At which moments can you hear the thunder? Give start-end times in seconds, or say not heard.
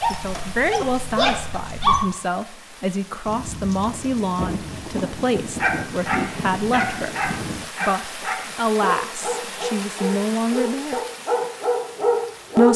3.2-7.7.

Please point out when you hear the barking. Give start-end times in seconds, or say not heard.
0.0-2.0, 5.5-12.7.